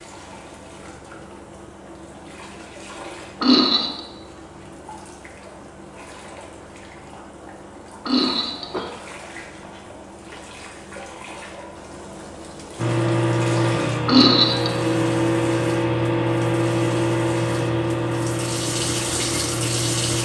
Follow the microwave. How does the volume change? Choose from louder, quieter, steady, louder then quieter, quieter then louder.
quieter.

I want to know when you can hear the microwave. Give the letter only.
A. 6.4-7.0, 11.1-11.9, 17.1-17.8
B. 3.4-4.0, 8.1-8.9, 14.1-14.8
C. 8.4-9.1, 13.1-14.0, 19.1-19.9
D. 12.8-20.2
D.